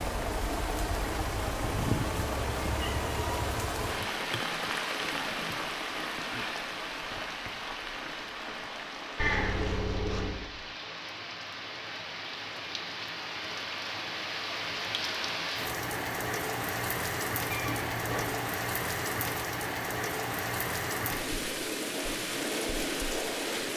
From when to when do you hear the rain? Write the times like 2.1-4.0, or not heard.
0.0-23.7.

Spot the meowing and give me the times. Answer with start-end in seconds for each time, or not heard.
1.6-3.5, 9.2-10.5, 17.5-18.4.